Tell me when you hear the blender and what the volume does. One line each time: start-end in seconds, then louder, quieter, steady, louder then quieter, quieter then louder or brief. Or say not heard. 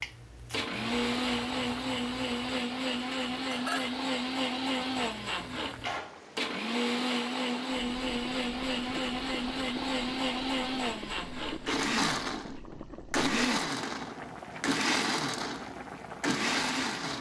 0.0-17.1 steady.